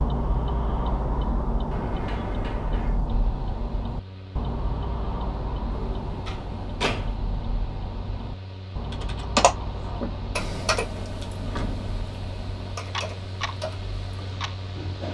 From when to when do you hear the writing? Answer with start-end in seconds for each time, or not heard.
not heard.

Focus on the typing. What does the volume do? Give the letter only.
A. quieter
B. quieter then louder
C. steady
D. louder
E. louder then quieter
B.